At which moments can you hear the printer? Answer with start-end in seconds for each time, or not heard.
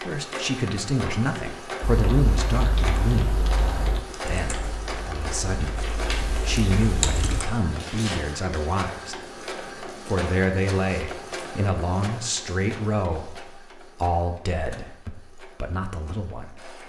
0.0-16.8.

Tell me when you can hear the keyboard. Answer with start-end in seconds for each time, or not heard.
1.8-7.5.